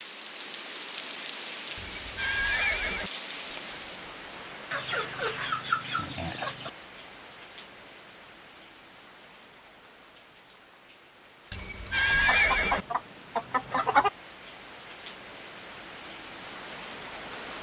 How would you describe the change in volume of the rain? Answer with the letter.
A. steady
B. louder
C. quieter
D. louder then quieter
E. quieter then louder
E.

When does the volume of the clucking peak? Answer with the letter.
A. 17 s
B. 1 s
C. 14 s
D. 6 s
C.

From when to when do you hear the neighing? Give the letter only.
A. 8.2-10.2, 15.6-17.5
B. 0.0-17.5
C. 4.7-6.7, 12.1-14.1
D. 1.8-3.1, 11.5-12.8
D.